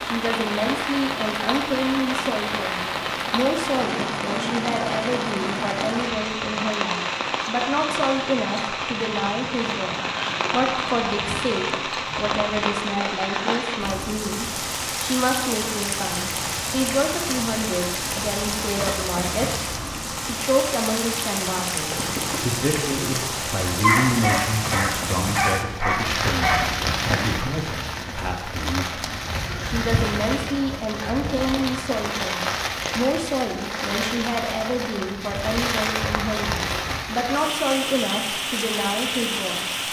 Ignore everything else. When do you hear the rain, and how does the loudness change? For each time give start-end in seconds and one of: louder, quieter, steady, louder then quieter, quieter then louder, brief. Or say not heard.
0.0-39.8 steady.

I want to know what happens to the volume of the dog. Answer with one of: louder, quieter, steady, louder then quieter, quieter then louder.
louder then quieter.